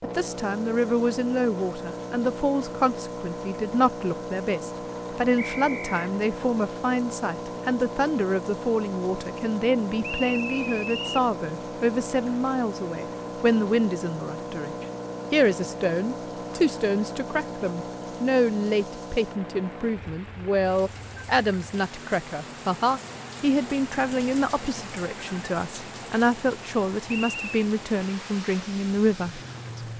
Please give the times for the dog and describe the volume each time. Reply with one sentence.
The dog can't be heard in this clip.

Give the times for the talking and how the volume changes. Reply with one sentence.
The talking can be heard from 0.0 to 29.4 s, at a steady volume.